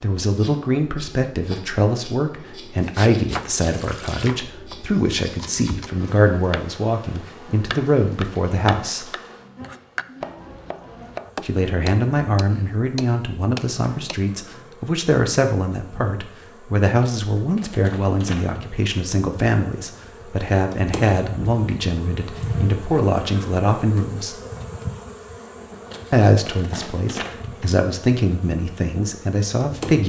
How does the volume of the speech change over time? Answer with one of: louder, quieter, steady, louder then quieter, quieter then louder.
steady.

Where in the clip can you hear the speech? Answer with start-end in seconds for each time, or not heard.
0.0-9.1, 11.4-24.4, 26.1-30.0.